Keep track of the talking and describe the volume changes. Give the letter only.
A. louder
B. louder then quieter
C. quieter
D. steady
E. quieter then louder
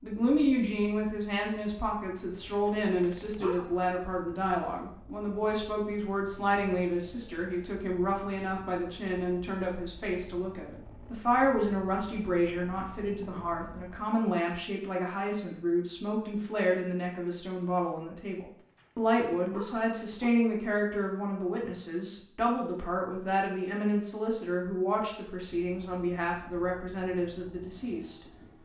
D.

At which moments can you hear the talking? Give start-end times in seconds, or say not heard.
0.0-28.6.